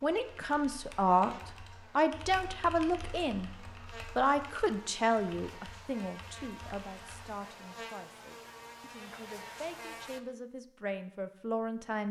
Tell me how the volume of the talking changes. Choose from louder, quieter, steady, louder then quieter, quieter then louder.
quieter then louder.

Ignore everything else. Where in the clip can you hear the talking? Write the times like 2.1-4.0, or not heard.
0.0-12.0.